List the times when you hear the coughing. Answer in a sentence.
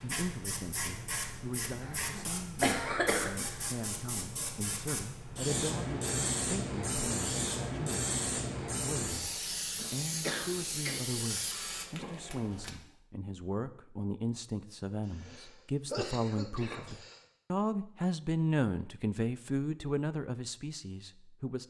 You can hear the coughing from 1.9 to 3.7 s, from 9.8 to 10.9 s and from 15.1 to 17.2 s.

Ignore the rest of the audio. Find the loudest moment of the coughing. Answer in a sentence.
The volume of the coughing peaks at 3 seconds.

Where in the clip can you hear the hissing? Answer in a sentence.
You can hear the hissing from 0.0 to 12.7 s.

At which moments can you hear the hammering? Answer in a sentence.
You can't hear the hammering here.